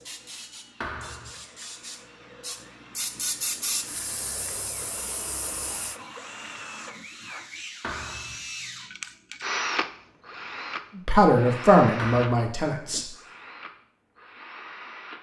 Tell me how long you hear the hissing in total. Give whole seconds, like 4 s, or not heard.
6 s.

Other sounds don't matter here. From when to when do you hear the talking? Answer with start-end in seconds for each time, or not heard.
10.9-13.1.